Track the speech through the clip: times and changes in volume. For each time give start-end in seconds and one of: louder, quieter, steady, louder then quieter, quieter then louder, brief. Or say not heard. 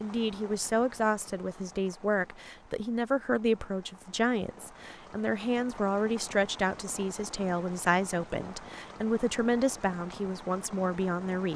0.0-11.5 steady.